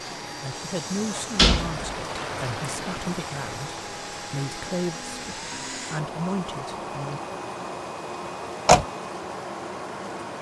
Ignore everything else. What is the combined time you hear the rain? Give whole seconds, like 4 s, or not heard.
10 s.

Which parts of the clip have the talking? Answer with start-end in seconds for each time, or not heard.
0.4-7.2.